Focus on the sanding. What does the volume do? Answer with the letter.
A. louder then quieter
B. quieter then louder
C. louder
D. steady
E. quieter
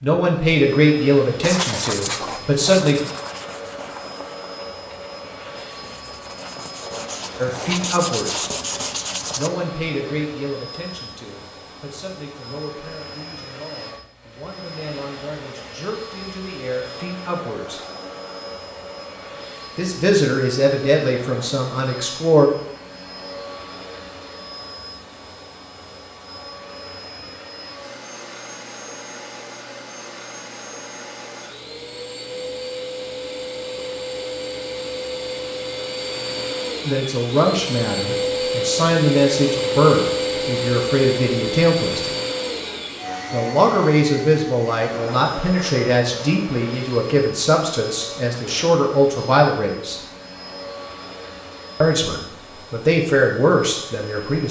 B.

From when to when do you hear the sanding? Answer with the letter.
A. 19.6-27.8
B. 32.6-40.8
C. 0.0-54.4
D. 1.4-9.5
D.